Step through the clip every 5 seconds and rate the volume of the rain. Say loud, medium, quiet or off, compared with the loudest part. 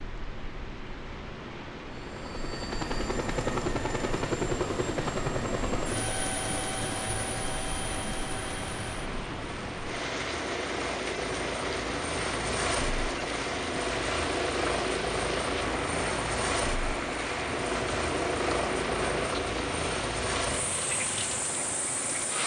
medium, loud, loud, loud, loud.